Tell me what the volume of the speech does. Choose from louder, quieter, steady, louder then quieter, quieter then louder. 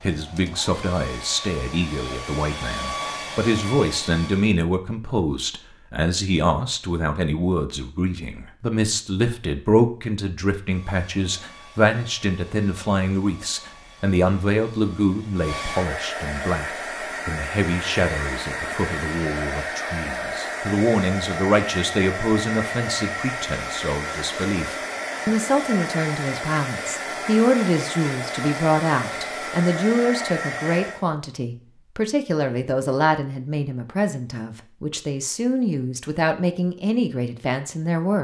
steady.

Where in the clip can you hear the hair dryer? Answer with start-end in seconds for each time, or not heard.
0.0-4.5, 10.6-31.1.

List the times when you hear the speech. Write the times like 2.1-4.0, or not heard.
0.0-38.1.